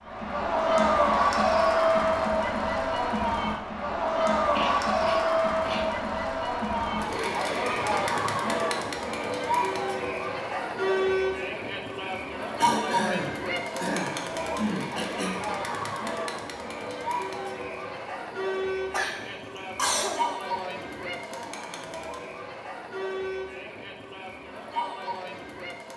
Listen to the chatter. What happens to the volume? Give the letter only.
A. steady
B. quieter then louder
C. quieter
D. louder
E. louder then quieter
C.